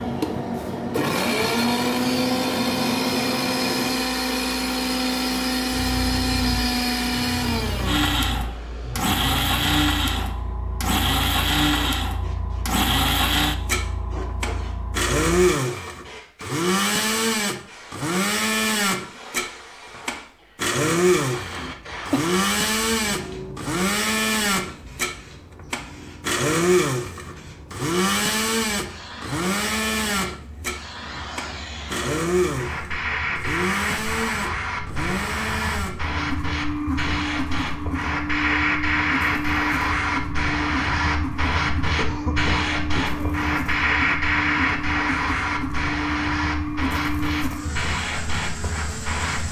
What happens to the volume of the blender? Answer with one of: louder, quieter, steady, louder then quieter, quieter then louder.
quieter.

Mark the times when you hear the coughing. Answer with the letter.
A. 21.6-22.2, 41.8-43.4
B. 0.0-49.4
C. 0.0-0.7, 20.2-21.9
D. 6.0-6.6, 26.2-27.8
A.